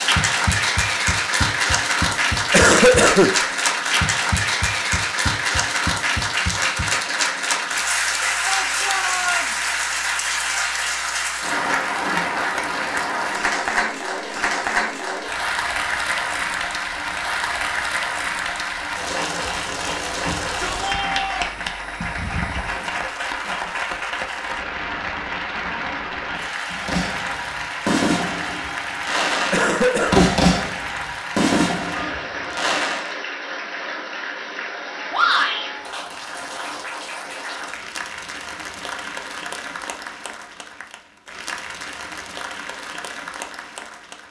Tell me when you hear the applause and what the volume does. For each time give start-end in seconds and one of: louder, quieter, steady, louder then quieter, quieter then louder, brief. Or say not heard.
0.0-44.2 quieter.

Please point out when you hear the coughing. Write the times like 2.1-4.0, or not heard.
2.1-3.4, 29.5-30.4.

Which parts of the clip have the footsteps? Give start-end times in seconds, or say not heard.
not heard.